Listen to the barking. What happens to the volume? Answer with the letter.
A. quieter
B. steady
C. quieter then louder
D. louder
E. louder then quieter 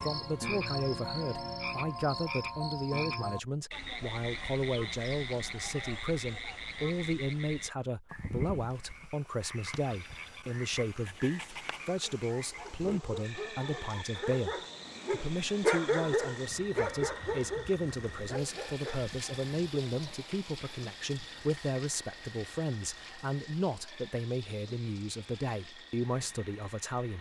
E.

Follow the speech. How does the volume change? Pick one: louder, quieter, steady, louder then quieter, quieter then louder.
steady.